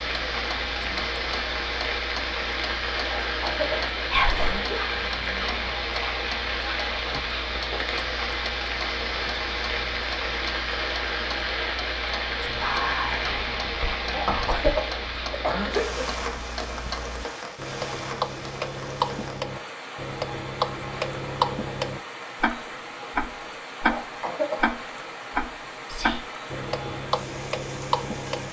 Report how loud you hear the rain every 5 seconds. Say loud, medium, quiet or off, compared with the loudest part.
loud, loud, loud, medium, medium, medium.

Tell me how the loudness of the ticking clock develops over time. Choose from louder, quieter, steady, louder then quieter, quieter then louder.
louder.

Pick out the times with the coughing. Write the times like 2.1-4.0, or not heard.
3.0-4.8, 14.1-16.1, 23.9-24.7.